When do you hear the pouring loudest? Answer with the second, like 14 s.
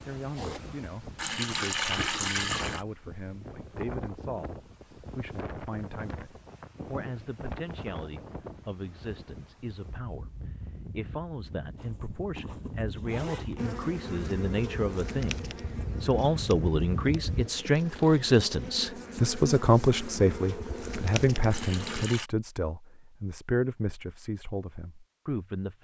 2 s.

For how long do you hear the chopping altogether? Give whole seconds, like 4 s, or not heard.
not heard.